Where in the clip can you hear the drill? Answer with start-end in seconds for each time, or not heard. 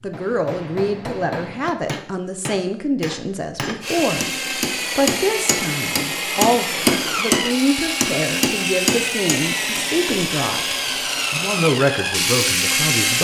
3.8-13.1.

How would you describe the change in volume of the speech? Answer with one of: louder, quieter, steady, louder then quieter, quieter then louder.
steady.